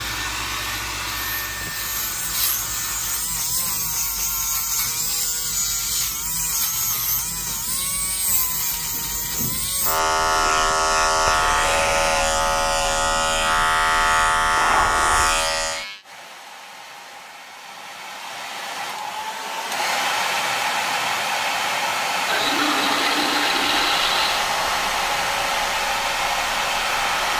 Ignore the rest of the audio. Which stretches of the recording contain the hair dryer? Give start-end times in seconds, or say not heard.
0.0-3.3, 16.0-27.3.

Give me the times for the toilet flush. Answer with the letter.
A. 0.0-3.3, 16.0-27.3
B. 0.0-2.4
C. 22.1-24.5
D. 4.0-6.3
C.